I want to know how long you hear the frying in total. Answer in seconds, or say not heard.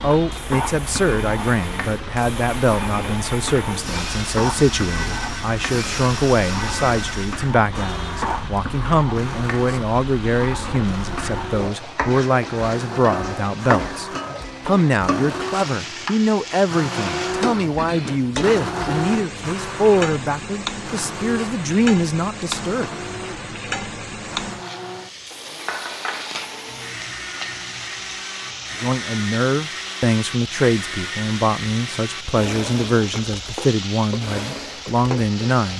36 s.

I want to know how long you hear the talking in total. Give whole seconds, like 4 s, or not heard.
30 s.